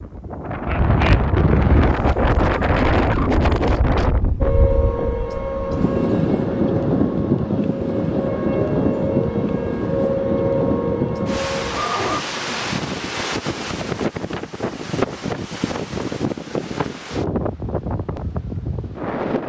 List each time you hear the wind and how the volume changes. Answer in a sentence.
The wind can be heard from 0.0 to 19.4 s, getting quieter.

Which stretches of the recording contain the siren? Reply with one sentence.
You can hear the siren from 4.4 to 12.2 s.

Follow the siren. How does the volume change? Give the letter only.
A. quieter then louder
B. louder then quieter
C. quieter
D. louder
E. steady
A.